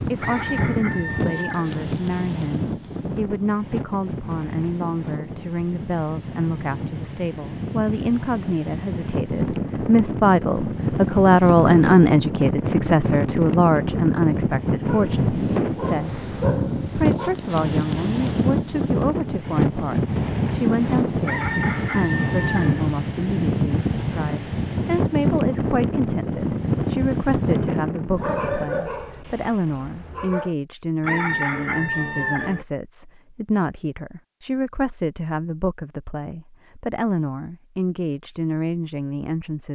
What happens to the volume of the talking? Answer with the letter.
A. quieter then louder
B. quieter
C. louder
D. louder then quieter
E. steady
D.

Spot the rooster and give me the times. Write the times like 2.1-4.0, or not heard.
0.1-1.8, 21.2-22.9, 31.0-32.6.